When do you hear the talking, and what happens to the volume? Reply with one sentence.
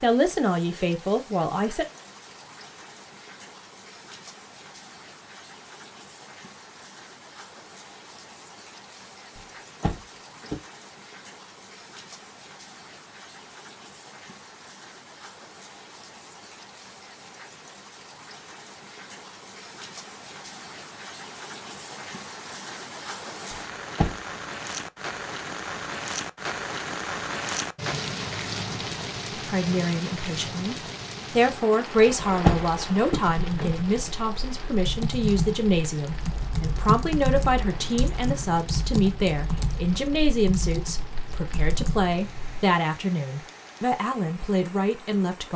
The talking can be heard briefly from 0.0 to 1.9 s; and from 29.4 to 45.5 s, at a steady volume.